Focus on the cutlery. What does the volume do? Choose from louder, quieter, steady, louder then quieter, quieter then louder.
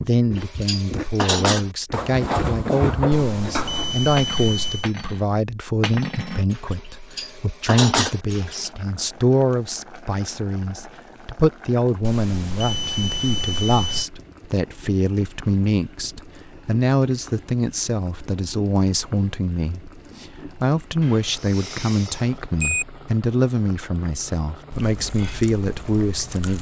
quieter then louder.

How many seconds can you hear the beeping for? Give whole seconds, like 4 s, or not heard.
6 s.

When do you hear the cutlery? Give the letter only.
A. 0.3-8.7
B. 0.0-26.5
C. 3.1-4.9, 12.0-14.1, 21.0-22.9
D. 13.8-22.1
A.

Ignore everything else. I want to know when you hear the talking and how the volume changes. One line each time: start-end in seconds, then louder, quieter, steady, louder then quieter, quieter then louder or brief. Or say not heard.
0.0-26.5 steady.